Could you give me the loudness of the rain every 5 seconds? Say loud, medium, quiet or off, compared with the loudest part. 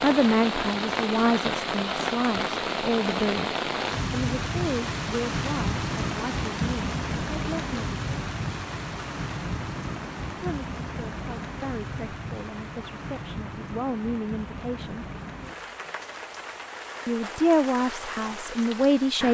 loud, loud, medium, medium.